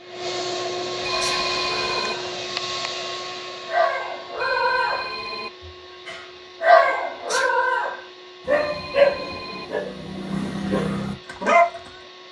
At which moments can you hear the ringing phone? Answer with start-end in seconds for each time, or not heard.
1.0-2.1, 4.3-5.5, 8.5-9.7.